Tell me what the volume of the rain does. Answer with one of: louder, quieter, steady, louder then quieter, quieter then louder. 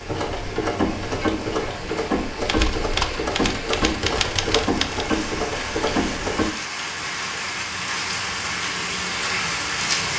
louder.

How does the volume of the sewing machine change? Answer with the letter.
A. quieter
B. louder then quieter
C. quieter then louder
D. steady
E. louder
D.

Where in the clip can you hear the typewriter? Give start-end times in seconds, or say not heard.
2.5-5.0.